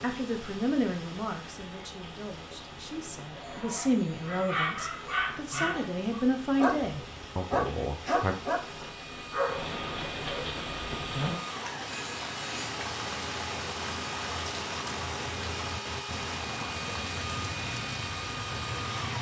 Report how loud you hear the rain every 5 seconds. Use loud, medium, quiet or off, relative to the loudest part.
medium, medium, loud, loud.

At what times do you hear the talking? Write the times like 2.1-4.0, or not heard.
0.0-8.3.